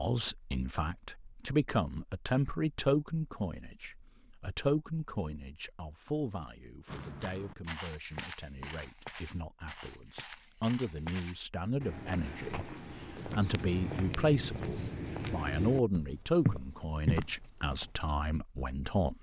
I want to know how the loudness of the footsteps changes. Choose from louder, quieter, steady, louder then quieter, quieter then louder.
louder.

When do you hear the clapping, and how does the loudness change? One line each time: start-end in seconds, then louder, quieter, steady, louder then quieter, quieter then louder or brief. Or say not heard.
not heard.